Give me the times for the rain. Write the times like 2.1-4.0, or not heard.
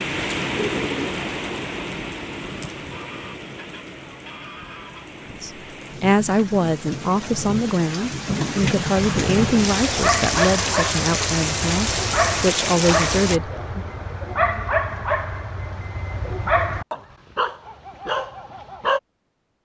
0.0-13.4.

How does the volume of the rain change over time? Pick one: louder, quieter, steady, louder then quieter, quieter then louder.
quieter then louder.